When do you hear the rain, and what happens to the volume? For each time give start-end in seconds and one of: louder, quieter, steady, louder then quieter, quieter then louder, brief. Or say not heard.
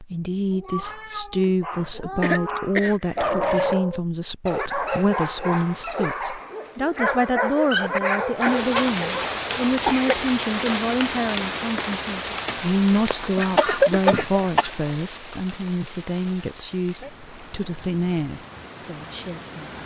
8.3-19.8 quieter.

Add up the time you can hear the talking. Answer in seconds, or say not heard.
20 s.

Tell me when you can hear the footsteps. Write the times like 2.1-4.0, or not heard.
not heard.